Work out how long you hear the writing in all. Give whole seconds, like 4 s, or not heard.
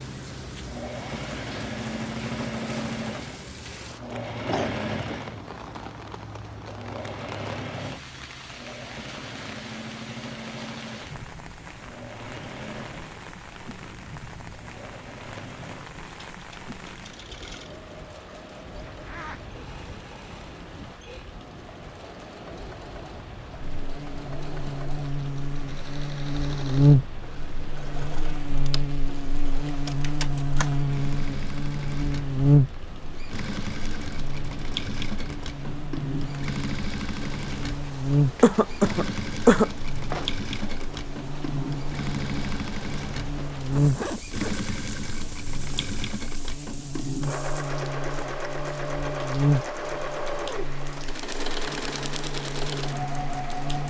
not heard.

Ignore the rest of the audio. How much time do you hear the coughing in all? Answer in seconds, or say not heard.
2 s.